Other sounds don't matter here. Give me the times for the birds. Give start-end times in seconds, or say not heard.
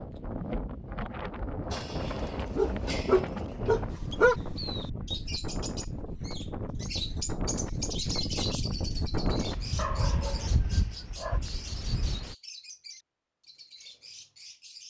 3.9-14.8.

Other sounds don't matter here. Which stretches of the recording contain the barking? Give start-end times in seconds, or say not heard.
1.7-4.3, 9.8-11.4.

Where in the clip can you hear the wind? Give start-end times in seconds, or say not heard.
0.0-12.3.